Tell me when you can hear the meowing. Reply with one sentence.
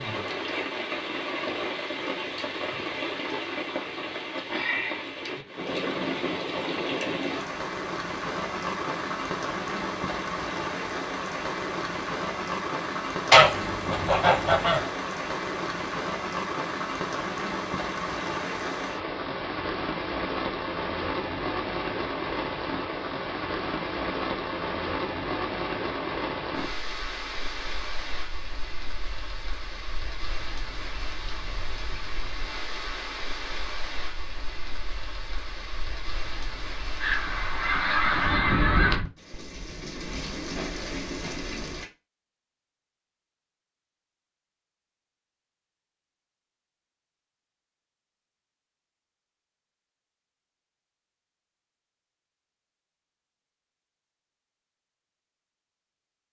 The meowing can't be heard in this clip.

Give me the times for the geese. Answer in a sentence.
The geese can be heard from 13.3 to 14.9 s and from 37.0 to 39.0 s.